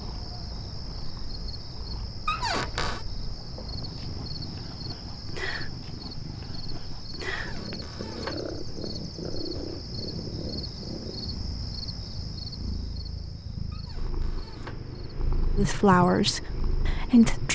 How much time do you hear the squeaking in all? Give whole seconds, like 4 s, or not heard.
3 s.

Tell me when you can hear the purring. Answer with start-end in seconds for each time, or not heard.
0.0-17.4.